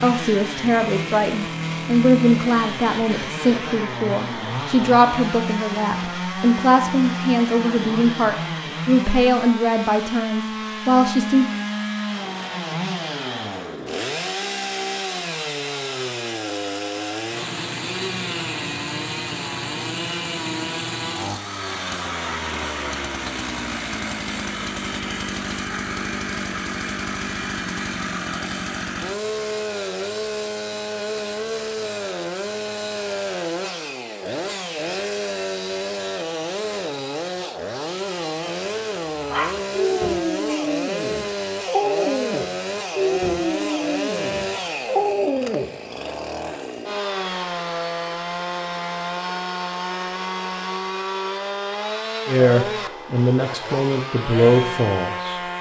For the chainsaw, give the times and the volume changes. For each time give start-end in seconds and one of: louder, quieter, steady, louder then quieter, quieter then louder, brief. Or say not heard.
0.0-55.5 steady.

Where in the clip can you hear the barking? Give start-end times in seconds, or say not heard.
39.1-46.1.